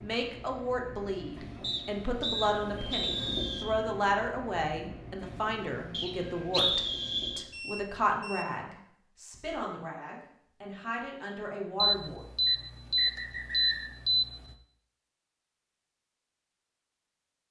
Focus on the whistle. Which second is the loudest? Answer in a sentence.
The loudest moment of the whistle is at 7 seconds.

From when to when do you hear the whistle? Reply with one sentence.
The whistle can be heard from 1.6 to 3.6 s, from 5.9 to 7.5 s and from 12.4 to 13.9 s.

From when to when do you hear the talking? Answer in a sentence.
The talking can be heard from 0.0 to 12.2 s.